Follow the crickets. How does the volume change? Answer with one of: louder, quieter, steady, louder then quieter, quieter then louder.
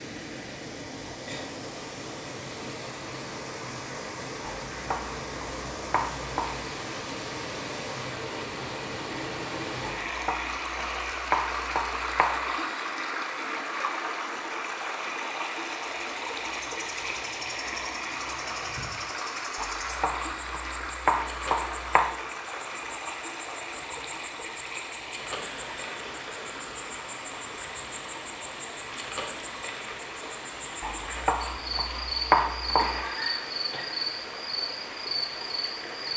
louder.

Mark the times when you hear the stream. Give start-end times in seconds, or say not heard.
0.0-36.1.